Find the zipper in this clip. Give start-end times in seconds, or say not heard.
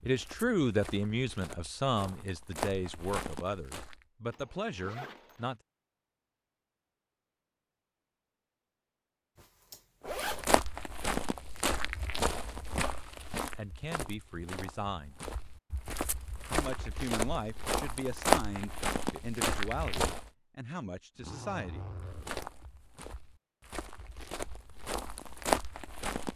4.3-5.5, 9.3-10.4, 21.1-22.4.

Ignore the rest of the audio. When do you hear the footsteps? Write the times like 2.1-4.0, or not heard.
0.0-4.0, 10.1-20.3, 21.9-26.3.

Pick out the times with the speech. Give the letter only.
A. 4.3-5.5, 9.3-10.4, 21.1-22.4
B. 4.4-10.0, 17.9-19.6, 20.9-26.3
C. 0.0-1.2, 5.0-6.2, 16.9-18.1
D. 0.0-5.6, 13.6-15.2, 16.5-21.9
D.